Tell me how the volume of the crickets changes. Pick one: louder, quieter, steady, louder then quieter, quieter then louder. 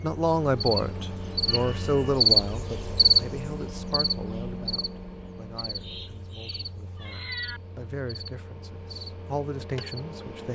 louder then quieter.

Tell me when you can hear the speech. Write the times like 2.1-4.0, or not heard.
0.0-10.4.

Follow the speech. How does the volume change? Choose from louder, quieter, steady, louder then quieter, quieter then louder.
quieter then louder.